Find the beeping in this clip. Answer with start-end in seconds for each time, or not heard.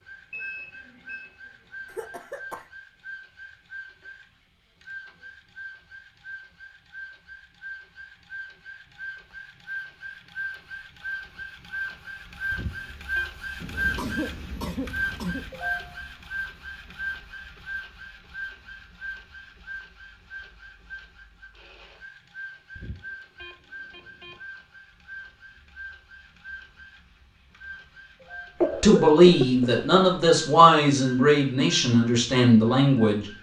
0.3-1.2, 12.5-13.2, 22.8-24.4.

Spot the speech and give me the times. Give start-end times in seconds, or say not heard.
28.8-33.2.